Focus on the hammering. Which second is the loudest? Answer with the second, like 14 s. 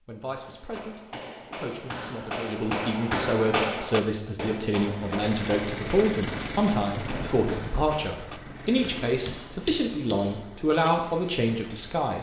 4 s.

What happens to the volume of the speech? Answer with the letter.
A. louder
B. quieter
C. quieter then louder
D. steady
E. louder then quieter
A.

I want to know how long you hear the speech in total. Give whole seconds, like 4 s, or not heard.
12 s.